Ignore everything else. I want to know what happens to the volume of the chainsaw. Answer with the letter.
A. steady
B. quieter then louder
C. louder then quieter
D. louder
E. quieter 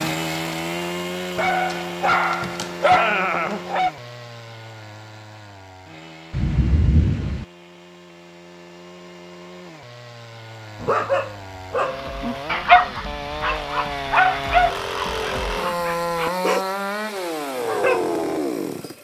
B.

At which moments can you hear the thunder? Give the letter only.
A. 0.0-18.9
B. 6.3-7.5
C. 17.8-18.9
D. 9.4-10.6
B.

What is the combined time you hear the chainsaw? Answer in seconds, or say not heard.
19 s.